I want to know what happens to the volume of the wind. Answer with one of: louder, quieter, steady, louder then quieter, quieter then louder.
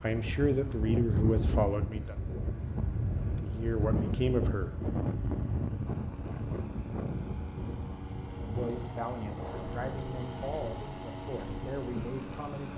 quieter.